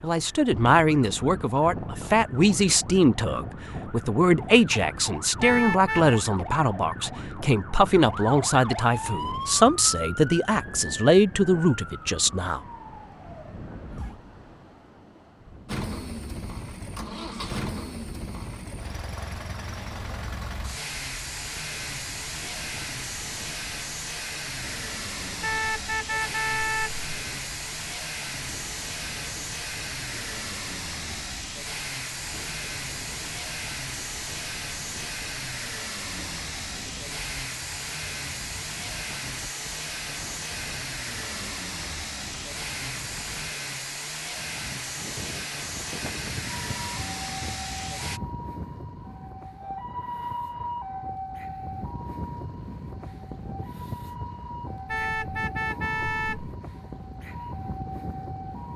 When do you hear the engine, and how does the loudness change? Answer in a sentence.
You can hear the engine from 15.7 to 48.2 s, at a steady volume.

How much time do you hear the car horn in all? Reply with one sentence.
You can hear the car horn for 4 seconds altogether.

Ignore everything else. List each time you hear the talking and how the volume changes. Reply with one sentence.
The talking can be heard from 0.0 to 12.6 s, at a steady volume.